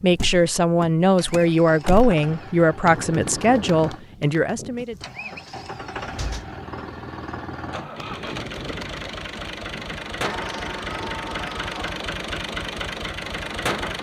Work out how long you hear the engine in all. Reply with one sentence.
The engine can be heard for 14 seconds in total.